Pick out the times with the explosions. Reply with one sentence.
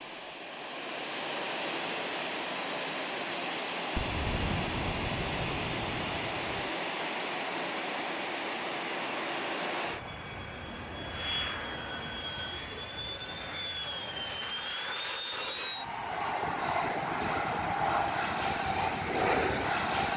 You can hear the explosions from 4.0 to 6.7 s.